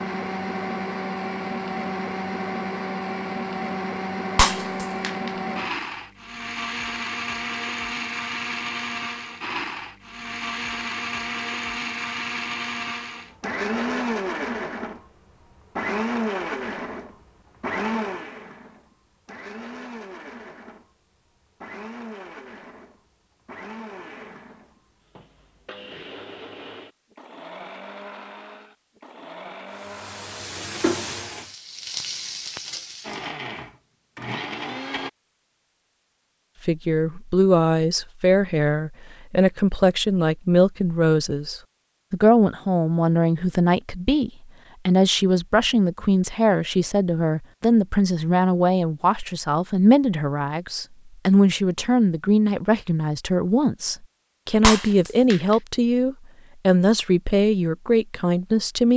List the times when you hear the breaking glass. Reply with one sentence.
You can hear the breaking glass from 4.3 to 5.3 s and from 54.6 to 55.5 s.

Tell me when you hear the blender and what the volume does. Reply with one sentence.
You can hear the blender from 0.0 to 31.5 s, getting quieter; and briefly from 33.0 to 35.1 s.